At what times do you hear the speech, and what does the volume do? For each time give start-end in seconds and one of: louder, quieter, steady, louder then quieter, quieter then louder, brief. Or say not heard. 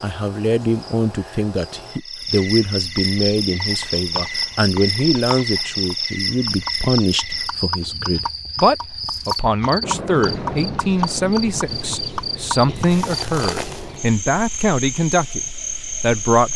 0.0-16.5 steady.